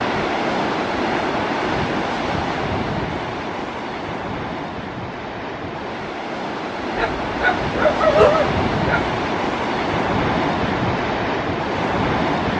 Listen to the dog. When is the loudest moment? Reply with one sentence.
The loudest moment of the dog is at 8 seconds.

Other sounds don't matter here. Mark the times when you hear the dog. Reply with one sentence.
The dog can be heard from 7.0 to 9.2 s.